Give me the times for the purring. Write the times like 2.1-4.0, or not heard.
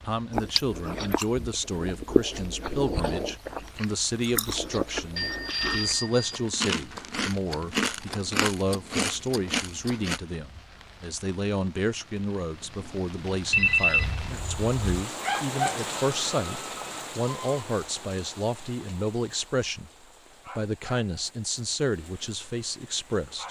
not heard.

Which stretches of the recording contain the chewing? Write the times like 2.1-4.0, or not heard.
0.3-10.2.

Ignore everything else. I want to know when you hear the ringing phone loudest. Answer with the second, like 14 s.
14 s.